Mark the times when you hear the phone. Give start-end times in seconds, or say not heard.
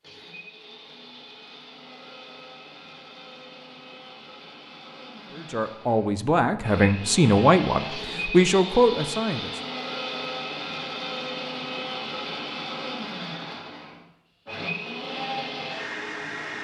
not heard.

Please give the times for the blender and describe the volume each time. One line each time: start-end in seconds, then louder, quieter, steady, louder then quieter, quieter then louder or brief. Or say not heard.
0.0-16.5 louder.